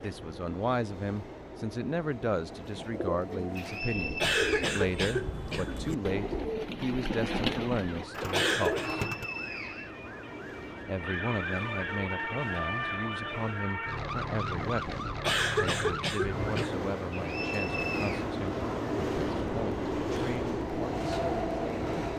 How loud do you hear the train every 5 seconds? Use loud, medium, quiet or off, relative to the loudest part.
quiet, quiet, quiet, loud, loud.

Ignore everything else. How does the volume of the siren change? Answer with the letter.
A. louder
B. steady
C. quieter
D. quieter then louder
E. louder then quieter
A.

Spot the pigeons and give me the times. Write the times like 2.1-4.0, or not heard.
2.5-9.2.